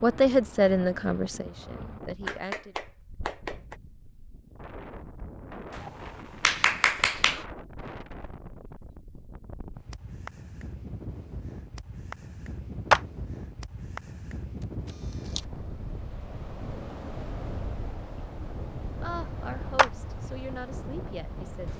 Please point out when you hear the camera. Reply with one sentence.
The camera can be heard from 14.6 to 15.4 s.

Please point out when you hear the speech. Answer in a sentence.
The speech can be heard from 0.0 to 2.8 s and from 19.0 to 21.7 s.